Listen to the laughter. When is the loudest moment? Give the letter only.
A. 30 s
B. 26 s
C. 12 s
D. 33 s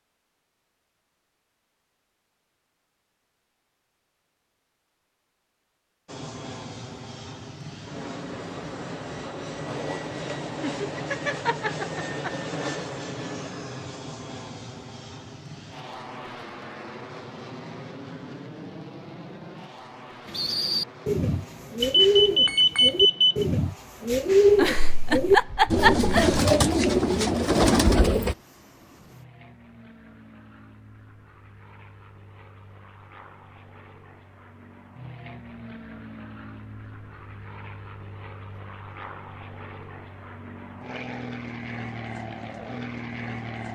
B.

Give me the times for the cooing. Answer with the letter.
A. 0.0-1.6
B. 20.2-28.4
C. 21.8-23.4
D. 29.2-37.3
B.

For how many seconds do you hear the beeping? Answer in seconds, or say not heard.
2 s.